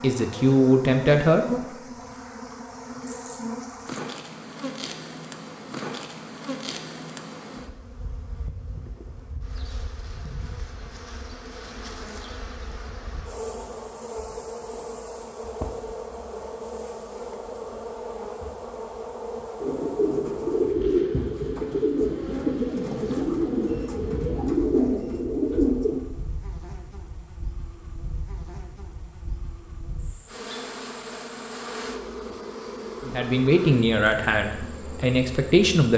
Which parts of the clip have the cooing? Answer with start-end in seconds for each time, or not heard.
19.6-26.0.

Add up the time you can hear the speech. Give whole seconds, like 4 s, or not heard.
4 s.